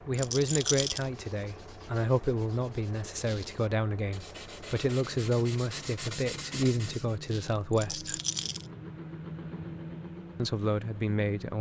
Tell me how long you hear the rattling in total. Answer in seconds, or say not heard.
2 s.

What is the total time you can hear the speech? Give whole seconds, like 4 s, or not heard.
9 s.